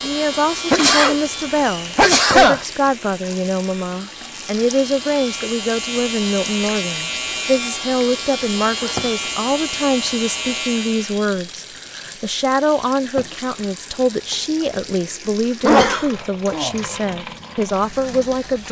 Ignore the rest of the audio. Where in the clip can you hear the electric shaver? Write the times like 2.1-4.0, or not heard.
0.0-11.2.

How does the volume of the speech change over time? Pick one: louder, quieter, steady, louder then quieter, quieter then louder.
steady.